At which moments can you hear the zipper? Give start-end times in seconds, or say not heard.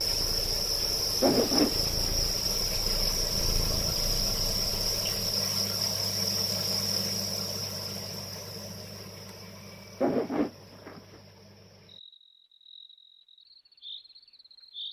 1.2-2.1, 10.0-11.2.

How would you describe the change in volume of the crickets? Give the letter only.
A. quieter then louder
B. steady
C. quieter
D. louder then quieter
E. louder
C.